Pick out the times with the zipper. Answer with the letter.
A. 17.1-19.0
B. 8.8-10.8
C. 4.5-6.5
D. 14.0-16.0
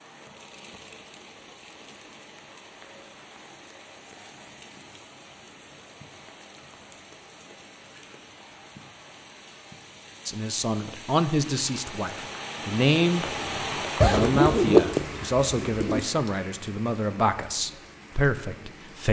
D.